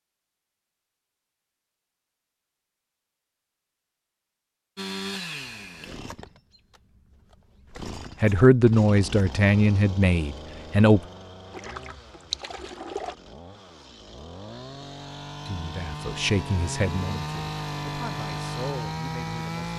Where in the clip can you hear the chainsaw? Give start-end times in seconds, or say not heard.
4.8-19.7.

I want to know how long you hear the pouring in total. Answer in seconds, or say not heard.
2 s.